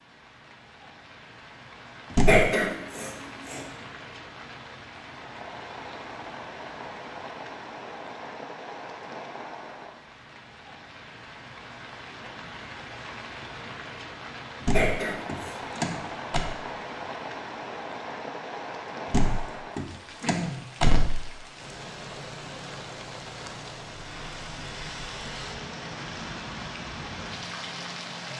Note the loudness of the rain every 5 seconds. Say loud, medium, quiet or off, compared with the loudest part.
medium, loud, medium, loud, loud, loud.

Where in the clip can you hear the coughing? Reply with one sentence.
The coughing can be heard from 2.2 to 3.6 s and from 14.7 to 15.6 s.